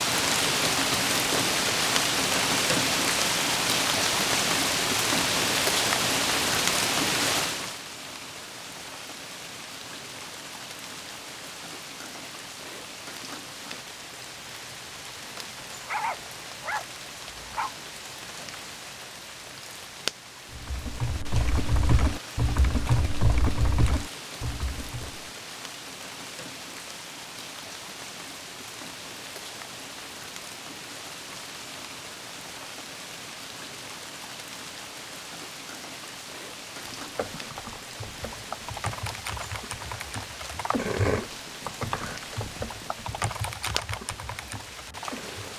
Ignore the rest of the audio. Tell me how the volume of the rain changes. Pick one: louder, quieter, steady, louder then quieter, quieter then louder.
quieter.